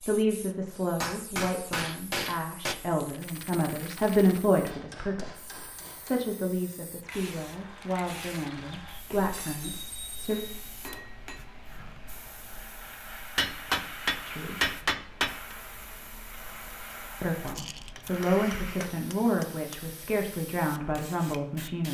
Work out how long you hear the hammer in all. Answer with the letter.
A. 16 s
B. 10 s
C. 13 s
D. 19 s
B.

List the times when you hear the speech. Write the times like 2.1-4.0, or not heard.
0.1-10.4, 14.2-14.7, 17.2-21.8.